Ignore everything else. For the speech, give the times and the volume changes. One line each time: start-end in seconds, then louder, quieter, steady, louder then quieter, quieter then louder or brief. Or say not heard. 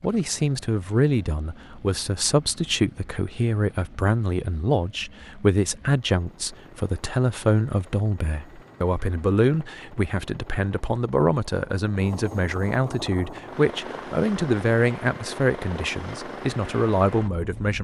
0.0-17.7 steady.